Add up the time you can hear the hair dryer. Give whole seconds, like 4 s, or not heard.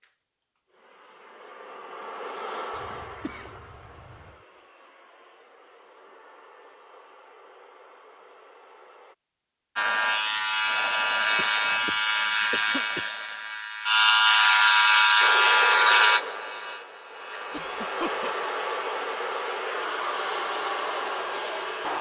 16 s.